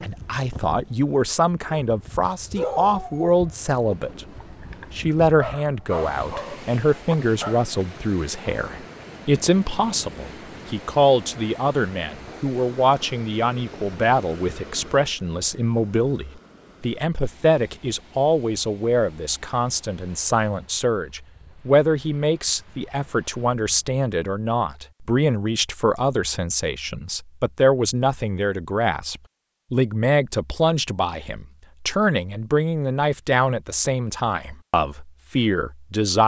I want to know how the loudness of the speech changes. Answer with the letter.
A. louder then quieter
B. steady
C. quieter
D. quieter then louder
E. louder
B.